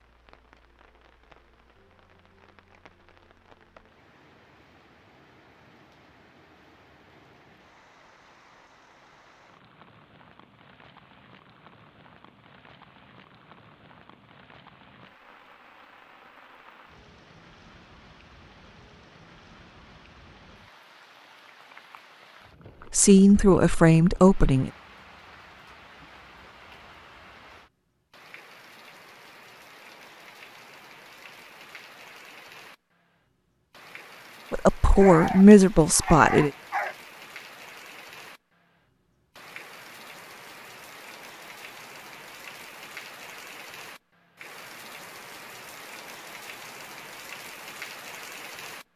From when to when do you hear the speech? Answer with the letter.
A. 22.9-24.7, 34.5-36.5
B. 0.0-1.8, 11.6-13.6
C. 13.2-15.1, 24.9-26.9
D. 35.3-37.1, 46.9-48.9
A.